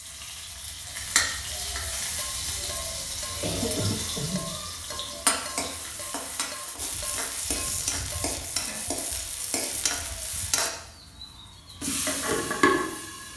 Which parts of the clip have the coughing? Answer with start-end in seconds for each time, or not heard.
3.4-4.5.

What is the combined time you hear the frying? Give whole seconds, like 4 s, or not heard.
13 s.